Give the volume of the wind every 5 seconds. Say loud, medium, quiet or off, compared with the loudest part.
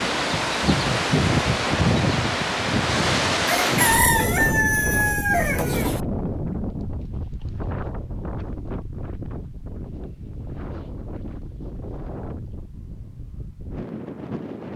loud, medium, quiet.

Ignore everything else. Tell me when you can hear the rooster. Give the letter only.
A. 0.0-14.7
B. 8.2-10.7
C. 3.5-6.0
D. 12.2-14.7
C.